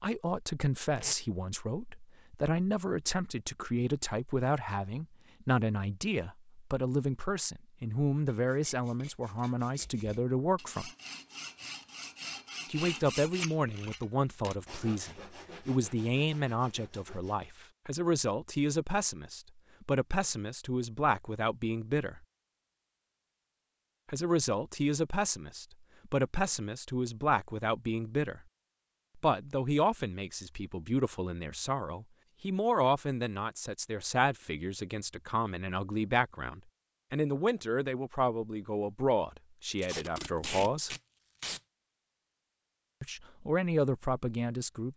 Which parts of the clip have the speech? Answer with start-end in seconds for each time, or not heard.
0.0-10.9, 12.7-22.2, 24.1-28.4, 29.1-41.0, 43.0-44.9.